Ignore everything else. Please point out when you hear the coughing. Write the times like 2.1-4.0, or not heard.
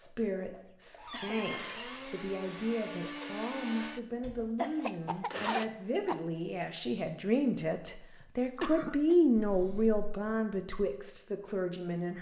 0.7-1.6, 4.5-6.2, 8.2-9.2.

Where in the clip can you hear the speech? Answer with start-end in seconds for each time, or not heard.
0.0-12.1.